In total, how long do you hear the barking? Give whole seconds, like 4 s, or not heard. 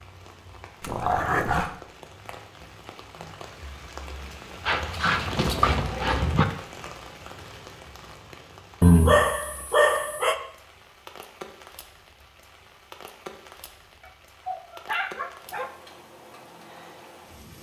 6 s.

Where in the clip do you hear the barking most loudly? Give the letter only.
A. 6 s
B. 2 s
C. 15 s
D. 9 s
D.